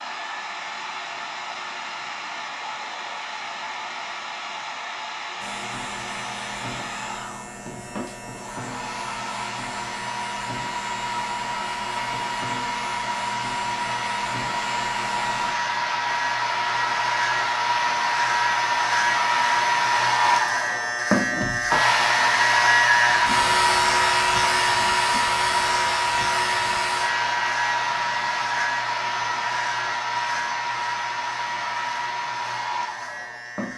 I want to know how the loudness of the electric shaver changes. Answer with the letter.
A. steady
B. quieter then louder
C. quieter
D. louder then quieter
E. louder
D.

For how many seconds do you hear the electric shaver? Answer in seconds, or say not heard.
28 s.